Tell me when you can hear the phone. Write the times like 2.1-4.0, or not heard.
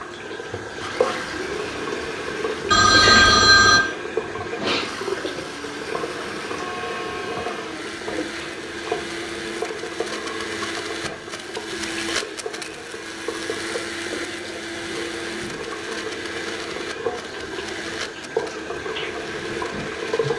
2.7-3.8.